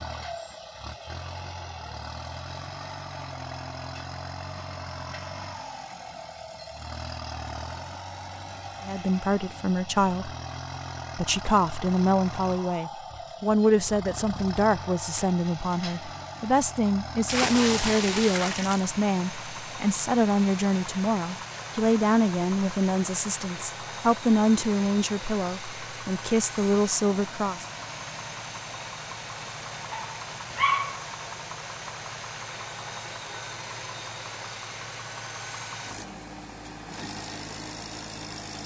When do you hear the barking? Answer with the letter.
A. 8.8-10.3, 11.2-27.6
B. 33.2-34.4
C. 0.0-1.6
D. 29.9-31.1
D.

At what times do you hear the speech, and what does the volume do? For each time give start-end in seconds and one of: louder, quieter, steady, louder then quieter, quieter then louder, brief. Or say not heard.
8.8-10.3 brief
11.2-27.6 steady.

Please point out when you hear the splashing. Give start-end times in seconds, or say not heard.
17.2-18.9.